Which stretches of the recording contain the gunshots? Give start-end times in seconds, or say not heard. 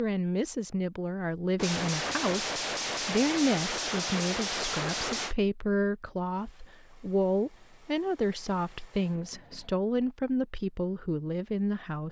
1.6-5.3.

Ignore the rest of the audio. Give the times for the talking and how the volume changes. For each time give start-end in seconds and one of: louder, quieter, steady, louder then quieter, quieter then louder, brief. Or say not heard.
0.0-12.0 steady.